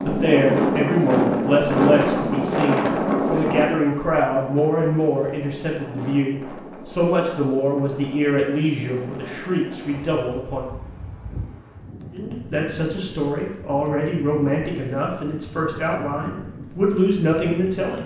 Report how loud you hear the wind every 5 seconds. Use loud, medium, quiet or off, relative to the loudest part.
loud, quiet, quiet, quiet.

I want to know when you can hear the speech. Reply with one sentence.
You can hear the speech from 0.0 to 10.7 s and from 12.1 to 18.0 s.